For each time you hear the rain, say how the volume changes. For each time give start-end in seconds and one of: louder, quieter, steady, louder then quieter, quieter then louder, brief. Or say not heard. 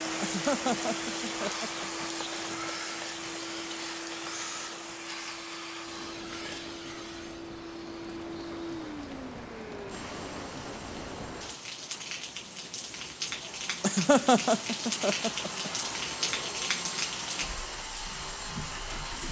0.0-19.2 quieter then louder.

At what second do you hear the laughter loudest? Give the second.
14 s.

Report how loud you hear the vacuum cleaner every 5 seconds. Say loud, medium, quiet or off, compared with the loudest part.
loud, loud, medium, loud.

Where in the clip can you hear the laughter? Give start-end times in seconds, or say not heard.
0.2-2.0, 13.8-15.7.